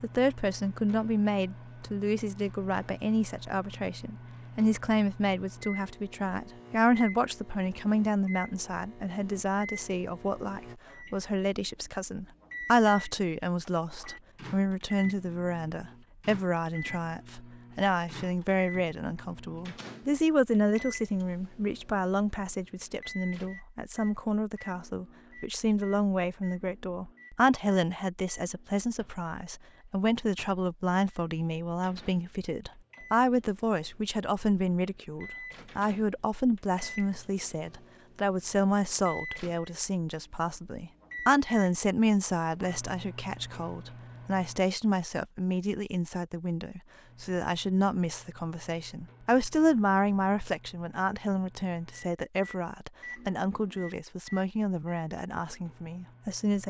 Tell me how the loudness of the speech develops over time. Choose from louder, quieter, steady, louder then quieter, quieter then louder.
steady.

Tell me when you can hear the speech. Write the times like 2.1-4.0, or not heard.
0.0-56.6.